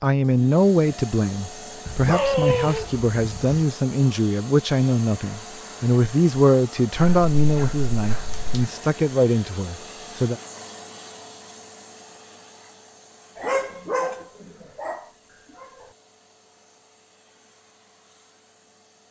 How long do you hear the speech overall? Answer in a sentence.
The speech can be heard for 10 seconds in total.